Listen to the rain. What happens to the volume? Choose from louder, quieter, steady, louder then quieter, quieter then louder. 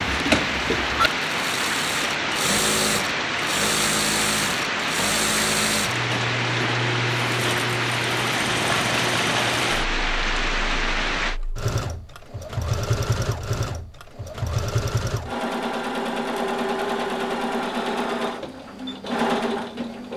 steady.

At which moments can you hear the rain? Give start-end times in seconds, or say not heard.
0.0-11.4.